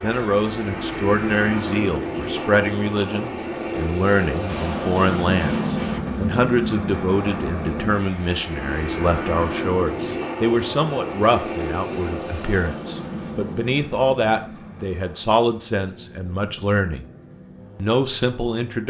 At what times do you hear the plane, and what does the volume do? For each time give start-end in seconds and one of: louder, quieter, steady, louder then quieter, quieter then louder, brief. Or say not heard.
0.0-18.8 quieter.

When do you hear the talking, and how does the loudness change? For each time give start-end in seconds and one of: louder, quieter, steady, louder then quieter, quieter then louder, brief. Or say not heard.
0.0-17.1 steady
17.8-18.8 brief.